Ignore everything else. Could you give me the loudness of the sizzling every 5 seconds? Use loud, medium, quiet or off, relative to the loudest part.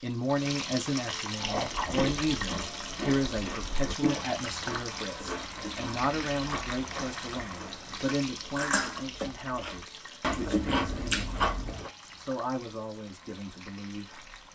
loud, loud, quiet.